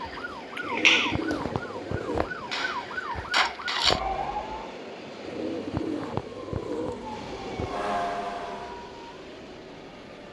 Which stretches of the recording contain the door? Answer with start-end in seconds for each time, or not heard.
not heard.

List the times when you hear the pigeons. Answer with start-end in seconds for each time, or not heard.
0.6-2.3, 5.2-7.9.